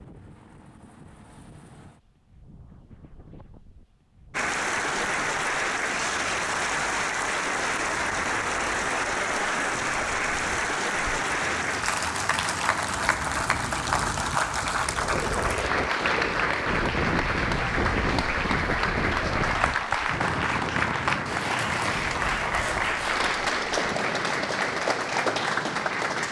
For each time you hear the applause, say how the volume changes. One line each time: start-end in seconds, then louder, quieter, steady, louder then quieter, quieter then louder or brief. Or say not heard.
4.3-26.2 steady.